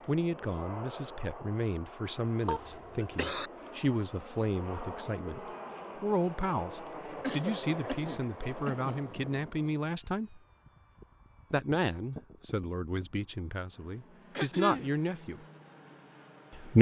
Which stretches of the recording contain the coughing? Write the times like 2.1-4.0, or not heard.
2.5-3.5, 7.2-9.0, 14.3-14.9.